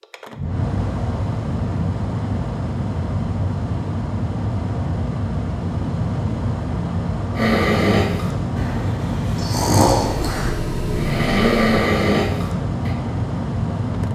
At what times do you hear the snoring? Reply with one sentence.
You can hear the snoring from 7.3 to 12.9 s.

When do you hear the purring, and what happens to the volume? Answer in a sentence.
The purring can't be heard in this clip.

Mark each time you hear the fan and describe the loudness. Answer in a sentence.
You can hear the fan from 0.0 to 14.1 s, at a steady volume.